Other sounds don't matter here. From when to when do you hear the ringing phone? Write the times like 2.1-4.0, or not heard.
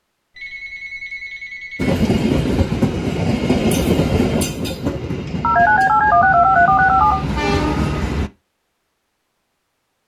0.3-1.9, 5.4-7.2.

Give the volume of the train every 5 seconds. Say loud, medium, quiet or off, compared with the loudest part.
loud, medium.